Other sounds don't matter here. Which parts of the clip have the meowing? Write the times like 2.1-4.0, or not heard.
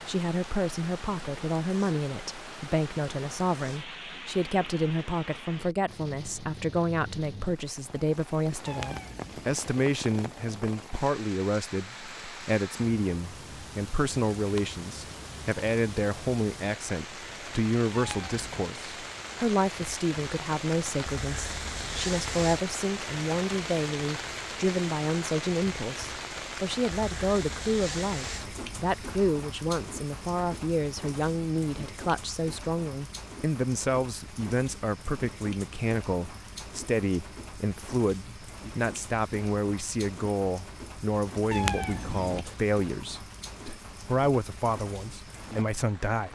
8.7-9.6, 17.9-18.6, 41.5-42.5.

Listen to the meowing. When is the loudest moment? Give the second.
42 s.